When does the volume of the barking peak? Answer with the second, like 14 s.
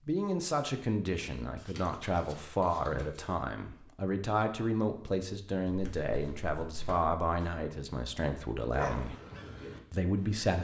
9 s.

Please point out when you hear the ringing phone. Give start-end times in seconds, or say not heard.
not heard.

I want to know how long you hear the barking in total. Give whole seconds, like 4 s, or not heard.
2 s.